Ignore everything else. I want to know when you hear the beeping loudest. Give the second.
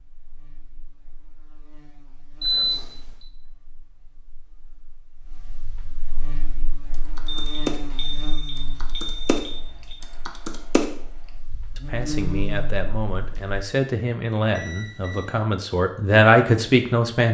3 s.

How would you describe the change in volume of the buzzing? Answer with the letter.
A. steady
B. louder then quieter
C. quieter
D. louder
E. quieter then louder
E.